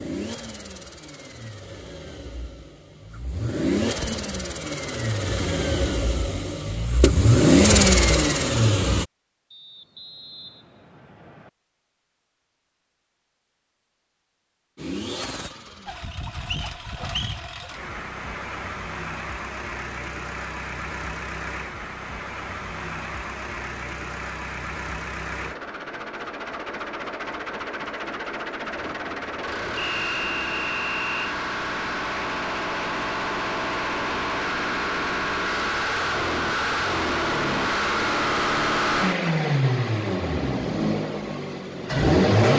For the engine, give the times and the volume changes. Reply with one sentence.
You can hear the engine from 0.0 to 9.1 s, getting louder; and from 14.8 to 42.5 s, getting louder.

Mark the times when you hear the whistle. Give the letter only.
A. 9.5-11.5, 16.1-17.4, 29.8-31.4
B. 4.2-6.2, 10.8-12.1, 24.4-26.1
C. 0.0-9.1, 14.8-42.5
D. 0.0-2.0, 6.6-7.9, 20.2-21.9
A.